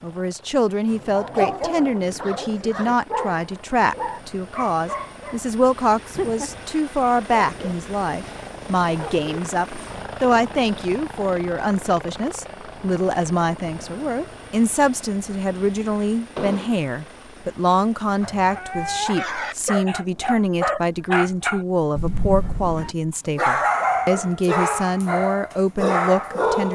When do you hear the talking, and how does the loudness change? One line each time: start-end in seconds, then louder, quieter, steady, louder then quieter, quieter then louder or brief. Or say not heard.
0.0-26.7 steady.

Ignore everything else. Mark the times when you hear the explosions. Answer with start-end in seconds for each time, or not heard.
6.1-6.7, 16.4-16.9.